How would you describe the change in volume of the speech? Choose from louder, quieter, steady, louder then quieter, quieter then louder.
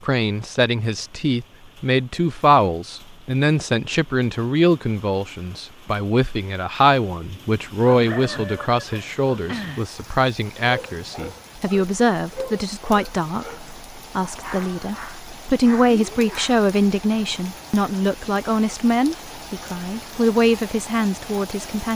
steady.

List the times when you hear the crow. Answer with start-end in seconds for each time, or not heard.
not heard.